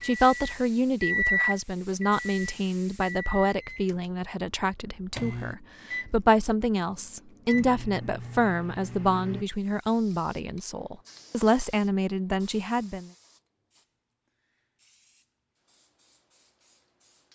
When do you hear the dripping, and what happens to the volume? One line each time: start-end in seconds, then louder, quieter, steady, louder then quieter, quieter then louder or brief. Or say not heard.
not heard.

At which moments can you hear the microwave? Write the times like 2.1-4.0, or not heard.
0.0-9.4.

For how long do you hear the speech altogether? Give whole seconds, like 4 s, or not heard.
13 s.